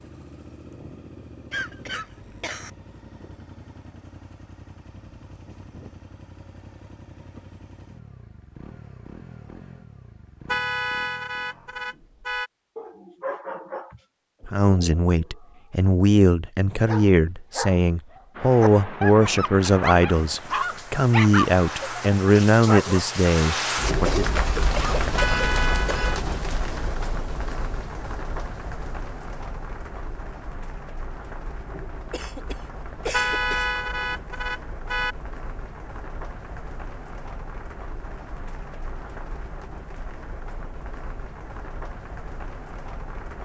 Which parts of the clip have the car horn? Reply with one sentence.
You can hear the car horn from 10.4 to 12.5 s, from 25.1 to 26.2 s and from 33.1 to 35.1 s.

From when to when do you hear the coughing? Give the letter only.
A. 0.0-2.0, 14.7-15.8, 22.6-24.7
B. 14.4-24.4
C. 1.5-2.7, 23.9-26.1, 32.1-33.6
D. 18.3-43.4
C.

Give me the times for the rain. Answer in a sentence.
You can hear the rain from 18.3 to 43.4 s.